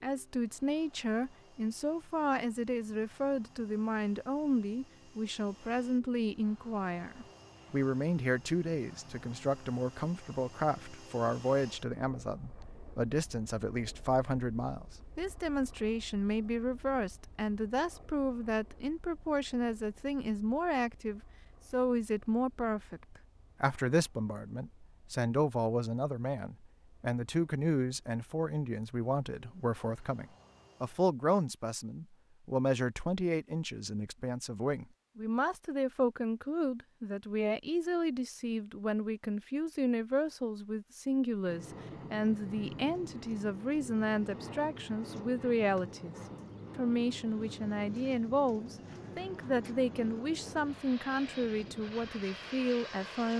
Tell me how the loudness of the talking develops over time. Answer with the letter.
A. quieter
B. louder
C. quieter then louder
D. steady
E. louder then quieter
D.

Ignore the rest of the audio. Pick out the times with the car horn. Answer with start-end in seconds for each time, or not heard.
not heard.